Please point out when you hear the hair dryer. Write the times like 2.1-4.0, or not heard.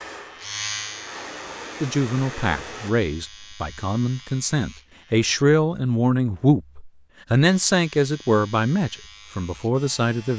0.0-3.0.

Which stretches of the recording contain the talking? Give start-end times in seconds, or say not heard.
1.8-10.3.